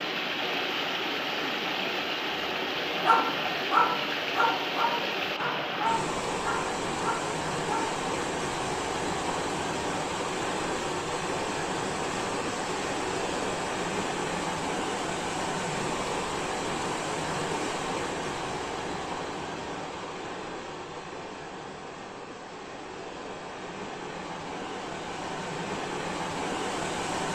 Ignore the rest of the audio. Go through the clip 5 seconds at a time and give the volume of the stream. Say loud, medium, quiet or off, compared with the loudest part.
loud, loud, loud, loud, medium, loud.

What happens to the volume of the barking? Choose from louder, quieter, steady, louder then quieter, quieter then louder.
quieter.